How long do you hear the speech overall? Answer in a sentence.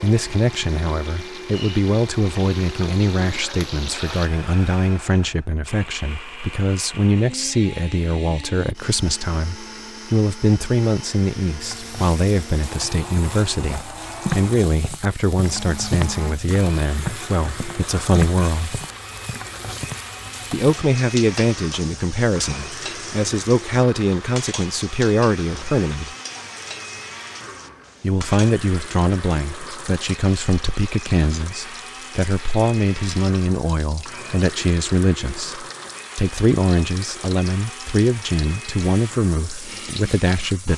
The speech can be heard for 37 seconds in total.